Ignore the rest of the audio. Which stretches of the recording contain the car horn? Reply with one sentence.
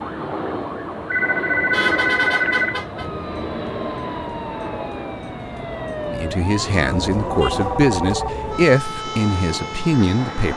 You can hear the car horn from 1.7 to 3.1 s and from 6.8 to 7.8 s.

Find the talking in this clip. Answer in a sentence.
The talking can be heard from 6.0 to 10.5 s.